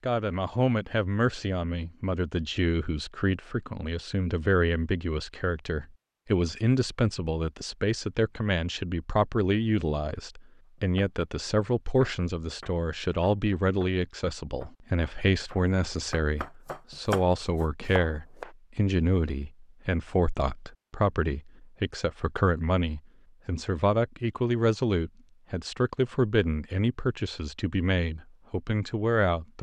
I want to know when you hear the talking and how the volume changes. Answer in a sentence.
You can hear the talking from 0.0 to 29.5 s, at a steady volume.